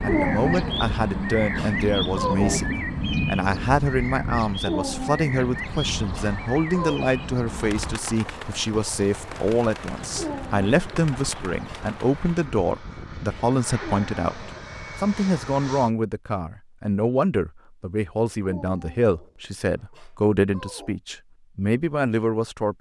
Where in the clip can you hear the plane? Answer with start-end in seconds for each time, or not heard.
0.0-15.9.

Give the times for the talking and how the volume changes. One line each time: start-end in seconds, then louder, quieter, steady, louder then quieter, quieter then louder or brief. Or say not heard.
0.0-22.7 steady.